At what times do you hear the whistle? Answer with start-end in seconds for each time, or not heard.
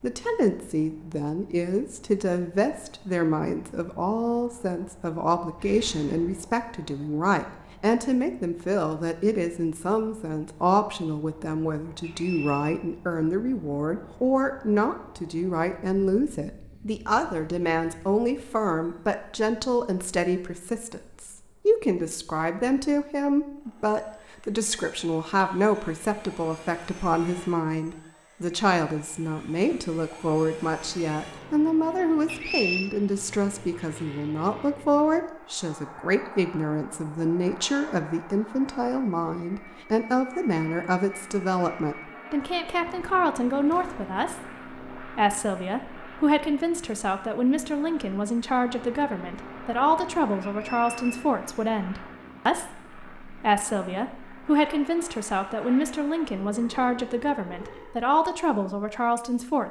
12.0-12.8, 32.2-33.0, 50.4-51.2.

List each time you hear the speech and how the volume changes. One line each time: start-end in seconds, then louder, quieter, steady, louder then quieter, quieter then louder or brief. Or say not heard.
0.0-59.6 steady.